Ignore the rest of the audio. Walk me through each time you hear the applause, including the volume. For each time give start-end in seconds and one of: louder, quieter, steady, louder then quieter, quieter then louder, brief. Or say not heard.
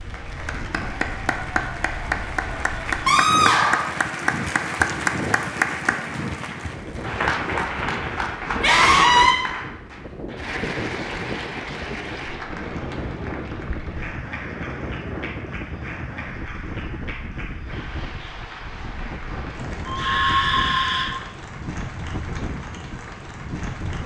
0.0-24.0 quieter.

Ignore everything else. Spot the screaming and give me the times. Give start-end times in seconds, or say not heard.
3.0-3.9, 8.6-9.3, 19.9-21.1.